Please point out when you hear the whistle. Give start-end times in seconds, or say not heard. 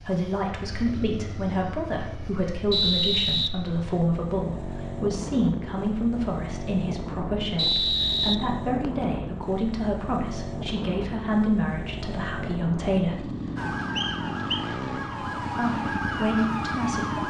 2.7-3.5, 7.5-9.1, 13.9-14.7.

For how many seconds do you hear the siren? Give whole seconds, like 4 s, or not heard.
4 s.